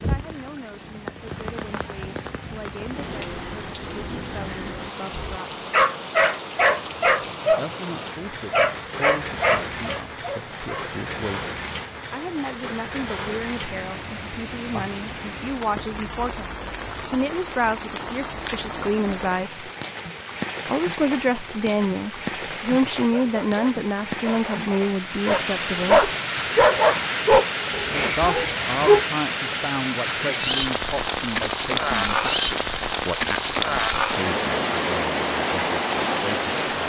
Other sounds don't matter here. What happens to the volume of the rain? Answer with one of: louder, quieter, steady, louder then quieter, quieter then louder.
louder.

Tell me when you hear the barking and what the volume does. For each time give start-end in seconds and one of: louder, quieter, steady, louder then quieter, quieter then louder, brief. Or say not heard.
5.1-10.9 quieter
23.1-29.1 louder then quieter.